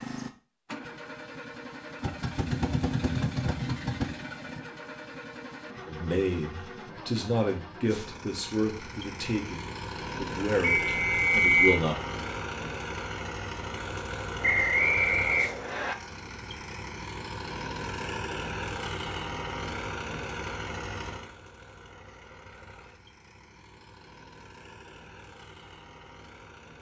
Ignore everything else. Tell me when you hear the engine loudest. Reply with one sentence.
The volume of the engine peaks at 3 seconds.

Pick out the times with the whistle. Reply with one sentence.
The whistle can be heard from 10.6 to 11.8 s and from 14.4 to 15.9 s.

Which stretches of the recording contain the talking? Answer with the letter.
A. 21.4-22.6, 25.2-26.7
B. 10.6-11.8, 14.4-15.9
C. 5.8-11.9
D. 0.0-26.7
C.